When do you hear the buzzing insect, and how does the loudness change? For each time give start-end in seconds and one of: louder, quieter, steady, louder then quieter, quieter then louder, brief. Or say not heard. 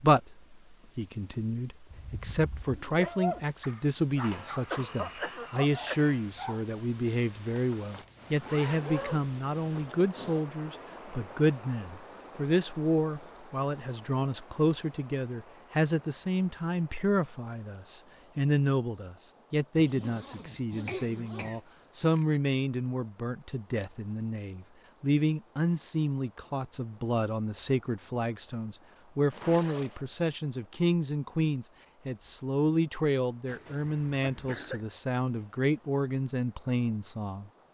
not heard.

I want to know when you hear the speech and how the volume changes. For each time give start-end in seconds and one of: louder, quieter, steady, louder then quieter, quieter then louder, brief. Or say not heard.
0.0-37.5 steady.